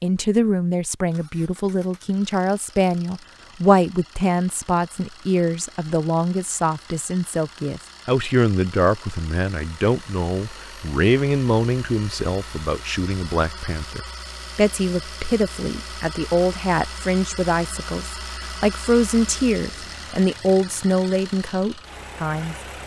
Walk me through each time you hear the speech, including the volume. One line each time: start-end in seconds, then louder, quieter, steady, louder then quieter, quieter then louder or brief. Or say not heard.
0.0-22.6 steady.